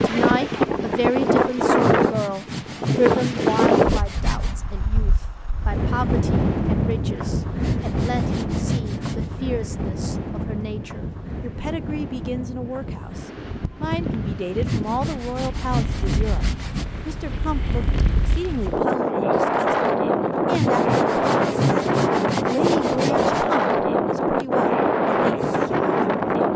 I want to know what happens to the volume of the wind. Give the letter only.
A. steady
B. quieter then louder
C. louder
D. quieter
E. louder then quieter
B.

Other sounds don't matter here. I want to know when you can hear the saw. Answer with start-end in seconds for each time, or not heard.
1.8-4.5, 7.6-9.2, 14.6-16.9, 20.5-23.4.